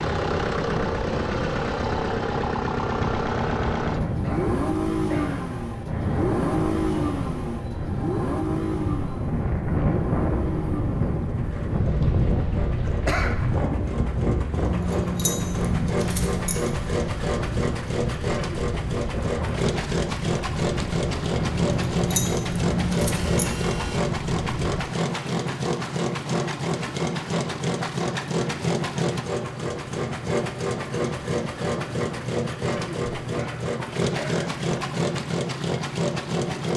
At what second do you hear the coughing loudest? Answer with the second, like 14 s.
13 s.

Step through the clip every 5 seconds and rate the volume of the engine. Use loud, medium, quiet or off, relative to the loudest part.
loud, loud, medium, loud, loud, loud, loud, loud.